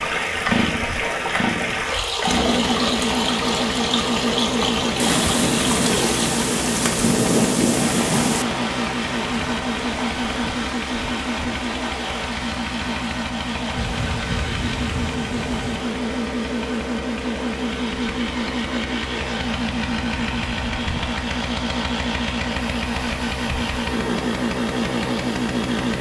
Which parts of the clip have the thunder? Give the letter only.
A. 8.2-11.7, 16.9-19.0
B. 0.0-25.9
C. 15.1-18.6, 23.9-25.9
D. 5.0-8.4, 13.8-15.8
D.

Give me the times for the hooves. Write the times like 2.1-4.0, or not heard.
not heard.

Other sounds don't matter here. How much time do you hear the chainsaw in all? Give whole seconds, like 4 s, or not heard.
26 s.